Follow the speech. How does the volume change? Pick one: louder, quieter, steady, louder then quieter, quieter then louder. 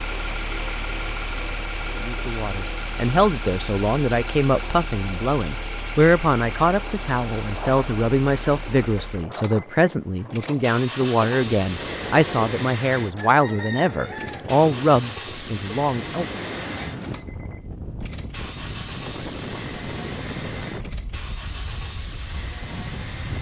steady.